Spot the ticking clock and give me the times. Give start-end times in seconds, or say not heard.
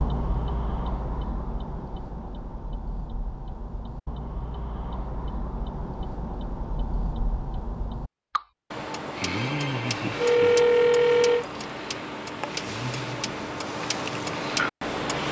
0.0-15.2.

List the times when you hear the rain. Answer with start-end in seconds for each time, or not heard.
not heard.